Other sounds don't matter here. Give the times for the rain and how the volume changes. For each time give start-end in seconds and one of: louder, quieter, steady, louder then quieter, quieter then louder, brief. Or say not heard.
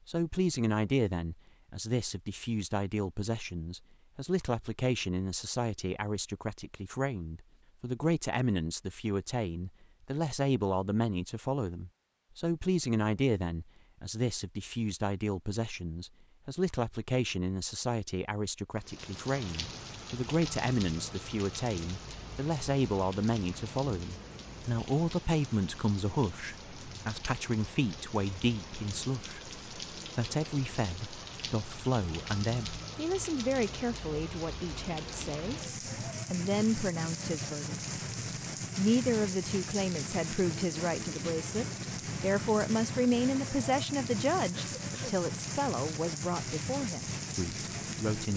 18.8-48.3 louder.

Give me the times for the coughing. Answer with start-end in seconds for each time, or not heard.
44.5-45.1.